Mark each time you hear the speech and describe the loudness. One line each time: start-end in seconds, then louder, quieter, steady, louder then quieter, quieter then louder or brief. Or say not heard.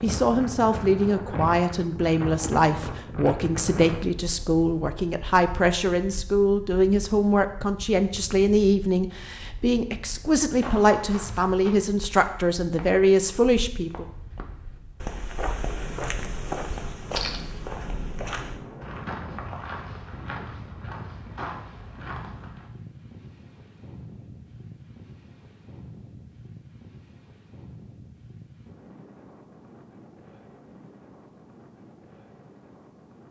0.0-14.1 steady.